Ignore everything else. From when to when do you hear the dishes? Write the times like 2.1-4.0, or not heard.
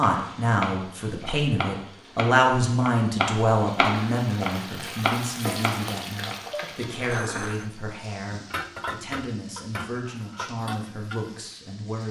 6.5-11.4.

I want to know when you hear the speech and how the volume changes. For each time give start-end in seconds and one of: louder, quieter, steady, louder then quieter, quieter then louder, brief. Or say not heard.
0.0-12.0 quieter.